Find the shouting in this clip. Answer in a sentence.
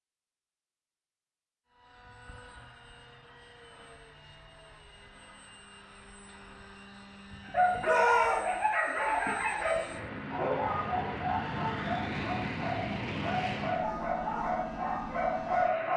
The shouting can be heard from 7.8 to 8.4 s.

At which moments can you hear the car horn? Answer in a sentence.
You can't hear the car horn here.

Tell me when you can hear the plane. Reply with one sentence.
The plane can be heard from 1.8 to 15.9 s.